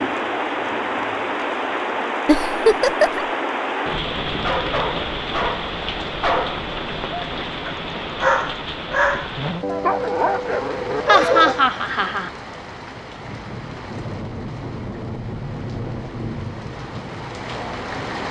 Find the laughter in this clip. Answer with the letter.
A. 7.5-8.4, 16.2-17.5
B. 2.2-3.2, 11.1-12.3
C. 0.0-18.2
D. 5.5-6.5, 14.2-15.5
B.